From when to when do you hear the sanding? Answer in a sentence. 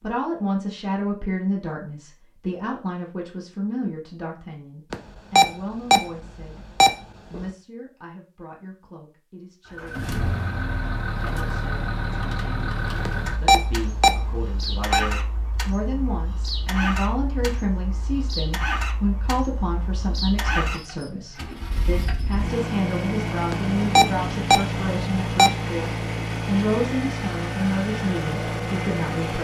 The sanding can't be heard in this clip.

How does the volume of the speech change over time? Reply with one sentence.
The volume of the speech goes down, then up.